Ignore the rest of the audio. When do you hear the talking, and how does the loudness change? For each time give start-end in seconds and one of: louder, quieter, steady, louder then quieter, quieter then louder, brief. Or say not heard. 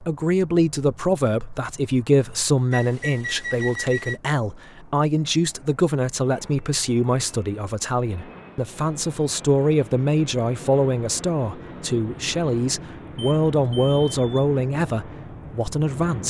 0.0-16.2 steady.